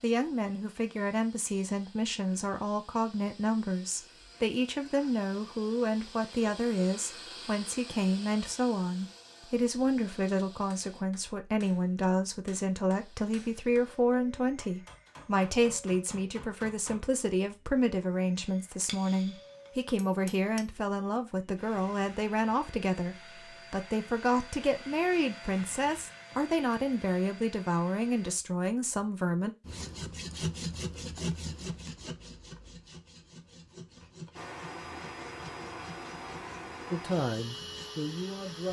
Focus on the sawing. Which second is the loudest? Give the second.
31 s.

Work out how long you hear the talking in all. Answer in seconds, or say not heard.
31 s.